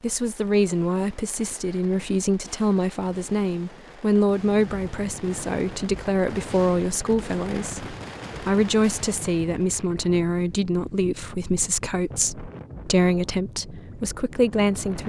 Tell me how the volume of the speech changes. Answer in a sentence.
The volume of the speech stays about the same.